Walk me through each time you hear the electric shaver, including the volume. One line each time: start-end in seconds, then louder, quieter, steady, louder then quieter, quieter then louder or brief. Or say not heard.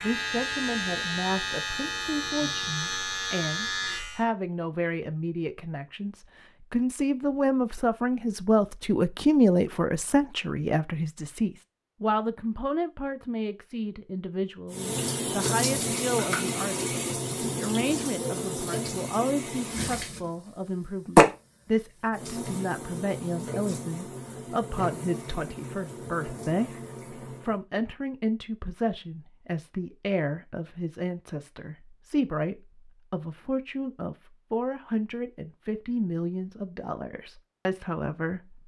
0.0-4.2 steady.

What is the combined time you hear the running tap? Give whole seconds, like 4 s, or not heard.
13 s.